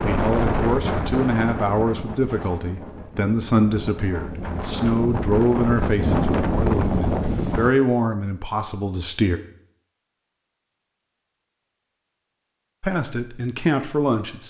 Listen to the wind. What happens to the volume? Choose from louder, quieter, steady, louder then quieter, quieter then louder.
quieter then louder.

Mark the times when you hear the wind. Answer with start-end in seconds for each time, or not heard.
0.0-7.7.